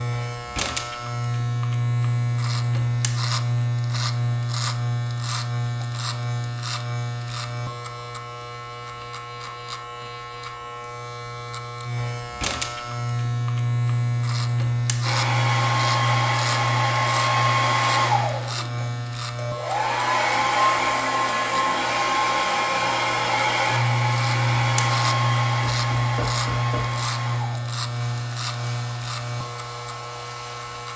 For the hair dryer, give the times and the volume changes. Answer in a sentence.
You can hear the hair dryer from 15.0 to 30.9 s, getting quieter.